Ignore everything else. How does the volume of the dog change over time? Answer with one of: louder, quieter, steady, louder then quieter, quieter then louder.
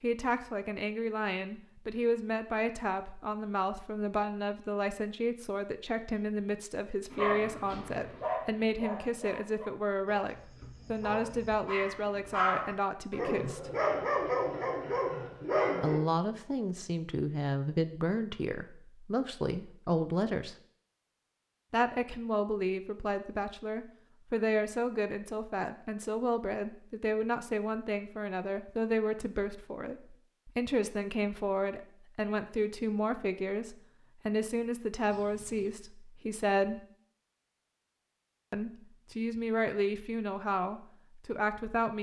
quieter then louder.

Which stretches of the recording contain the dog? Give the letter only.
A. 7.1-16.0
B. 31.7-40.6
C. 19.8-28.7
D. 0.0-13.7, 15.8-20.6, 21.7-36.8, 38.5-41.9
A.